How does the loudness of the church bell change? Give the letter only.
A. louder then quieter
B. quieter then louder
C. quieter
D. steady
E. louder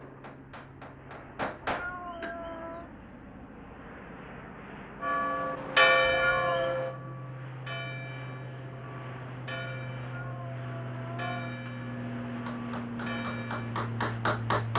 C.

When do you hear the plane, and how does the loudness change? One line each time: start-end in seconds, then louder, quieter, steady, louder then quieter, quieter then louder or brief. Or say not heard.
0.0-14.7 louder.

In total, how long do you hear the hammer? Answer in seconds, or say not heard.
5 s.